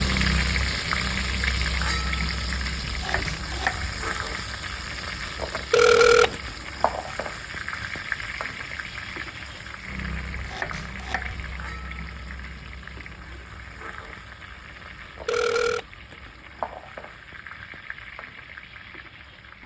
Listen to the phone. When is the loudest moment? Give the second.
6 s.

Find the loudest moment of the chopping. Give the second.
4 s.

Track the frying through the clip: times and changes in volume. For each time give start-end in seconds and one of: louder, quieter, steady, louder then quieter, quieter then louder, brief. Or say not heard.
0.0-19.6 quieter.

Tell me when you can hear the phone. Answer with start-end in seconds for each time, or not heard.
5.7-6.3, 15.2-15.8.